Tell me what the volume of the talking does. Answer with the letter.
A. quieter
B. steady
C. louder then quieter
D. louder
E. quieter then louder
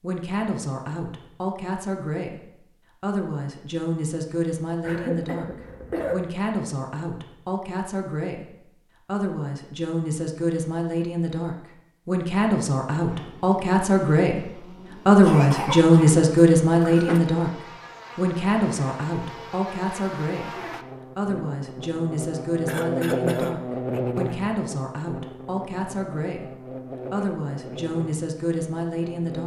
C.